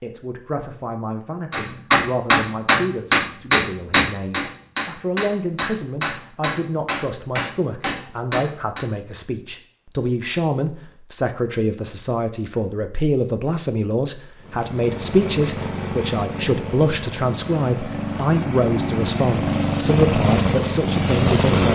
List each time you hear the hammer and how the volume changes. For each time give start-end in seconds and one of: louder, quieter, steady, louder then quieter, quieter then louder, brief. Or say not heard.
1.5-8.8 quieter.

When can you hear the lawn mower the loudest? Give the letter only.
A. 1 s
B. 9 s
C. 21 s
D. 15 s
C.